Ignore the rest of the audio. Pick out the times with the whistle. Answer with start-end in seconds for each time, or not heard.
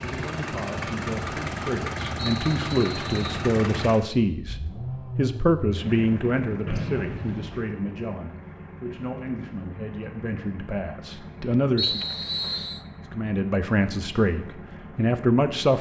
2.1-3.5, 6.7-7.7, 11.8-12.8.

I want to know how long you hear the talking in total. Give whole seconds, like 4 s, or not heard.
15 s.